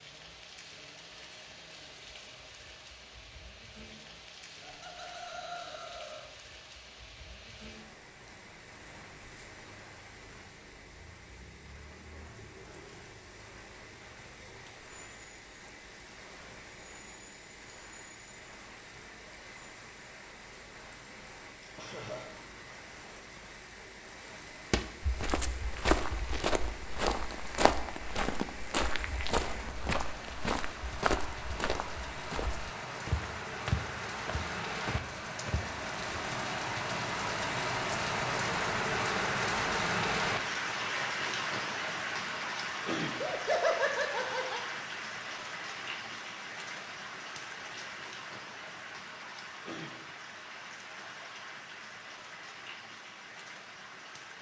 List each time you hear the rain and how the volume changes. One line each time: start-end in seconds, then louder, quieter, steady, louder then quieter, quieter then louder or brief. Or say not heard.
0.0-54.3 louder then quieter.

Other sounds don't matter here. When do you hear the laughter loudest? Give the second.
44 s.